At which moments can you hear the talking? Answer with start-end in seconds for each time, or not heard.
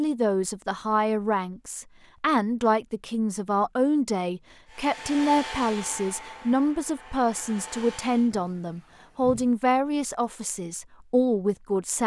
0.0-12.0.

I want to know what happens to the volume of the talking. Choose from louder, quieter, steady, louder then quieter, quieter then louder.
steady.